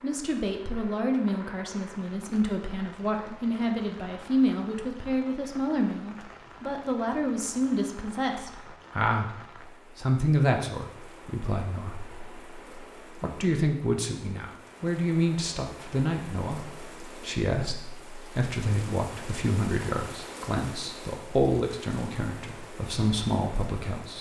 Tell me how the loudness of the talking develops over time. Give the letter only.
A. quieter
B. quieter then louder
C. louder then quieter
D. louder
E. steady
E.